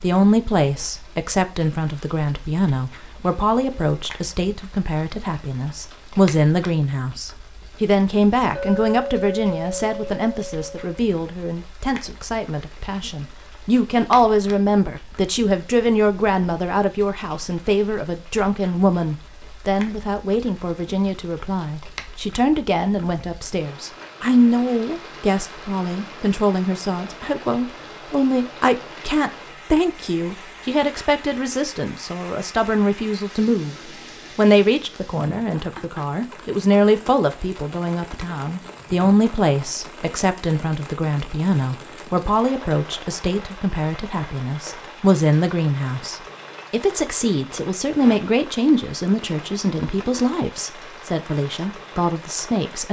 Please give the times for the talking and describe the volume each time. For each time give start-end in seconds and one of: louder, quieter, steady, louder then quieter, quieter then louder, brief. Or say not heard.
0.0-52.8 steady.